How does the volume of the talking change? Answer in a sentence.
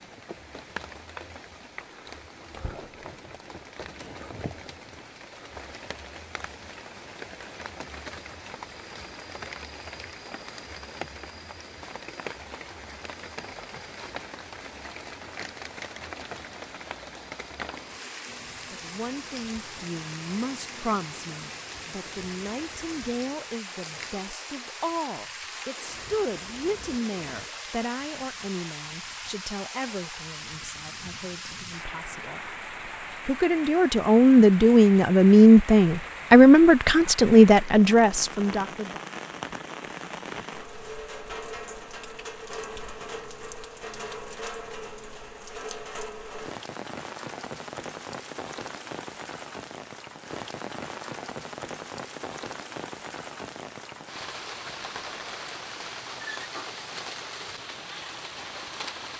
The loudness of the talking goes up.